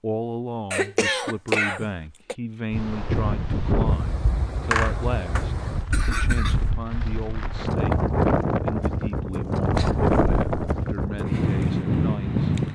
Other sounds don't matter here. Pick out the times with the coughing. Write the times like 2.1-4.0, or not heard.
0.7-2.4, 4.7-6.7, 9.7-10.7.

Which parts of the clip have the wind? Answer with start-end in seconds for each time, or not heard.
2.7-12.7.